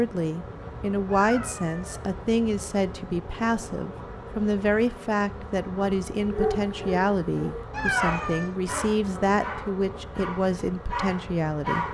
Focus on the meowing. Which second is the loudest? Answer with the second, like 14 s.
8 s.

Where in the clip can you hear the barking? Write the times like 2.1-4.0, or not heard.
6.2-11.8.